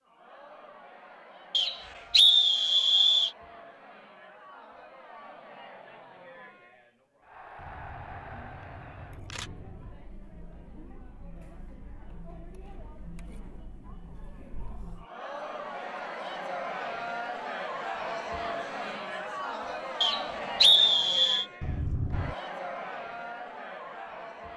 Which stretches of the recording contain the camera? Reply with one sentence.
You can hear the camera from 7.5 to 9.9 s and from 21.6 to 22.4 s.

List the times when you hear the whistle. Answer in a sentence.
You can hear the whistle from 1.5 to 3.3 s and from 20.0 to 21.4 s.